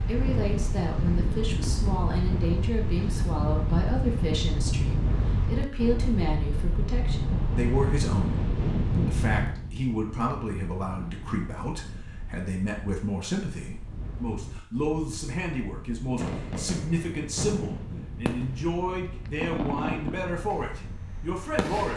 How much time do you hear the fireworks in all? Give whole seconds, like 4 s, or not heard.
6 s.